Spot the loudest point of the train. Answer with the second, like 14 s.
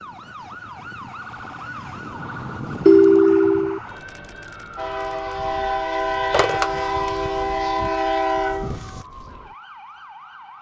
8 s.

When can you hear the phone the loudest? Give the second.
3 s.